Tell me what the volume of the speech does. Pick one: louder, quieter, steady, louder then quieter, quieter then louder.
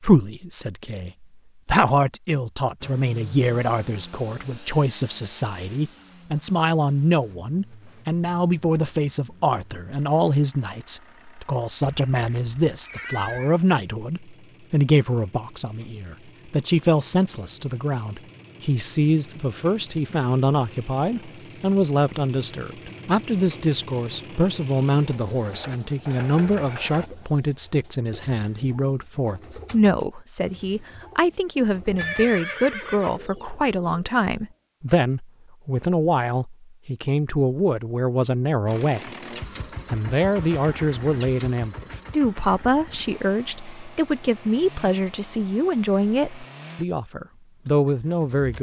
steady.